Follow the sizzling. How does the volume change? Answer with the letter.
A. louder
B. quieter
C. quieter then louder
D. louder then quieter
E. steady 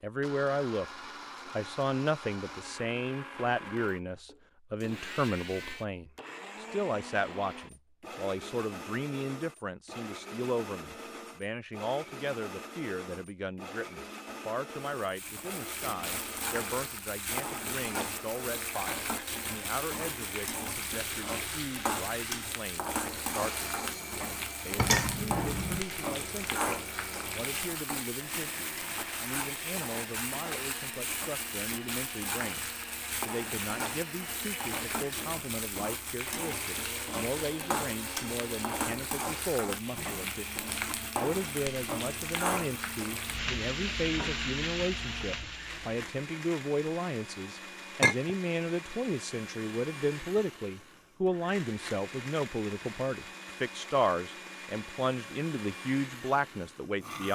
E.